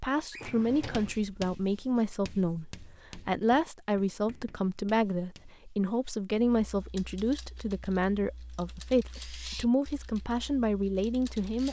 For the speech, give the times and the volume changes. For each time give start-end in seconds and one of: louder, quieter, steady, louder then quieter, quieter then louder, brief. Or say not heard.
0.0-11.6 steady.